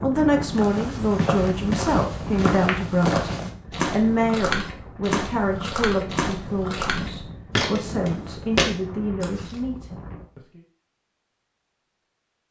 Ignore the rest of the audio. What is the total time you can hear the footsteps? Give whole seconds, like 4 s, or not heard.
9 s.